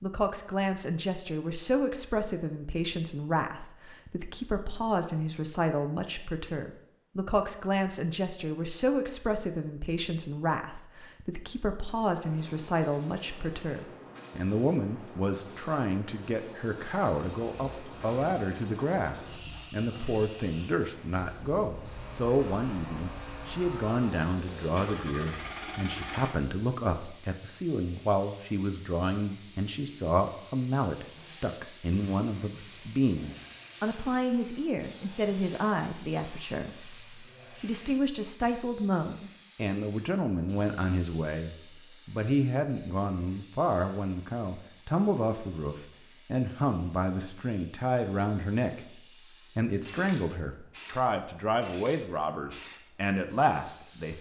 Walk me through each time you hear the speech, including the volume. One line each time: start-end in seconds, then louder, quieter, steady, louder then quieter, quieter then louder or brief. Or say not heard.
0.0-54.1 steady.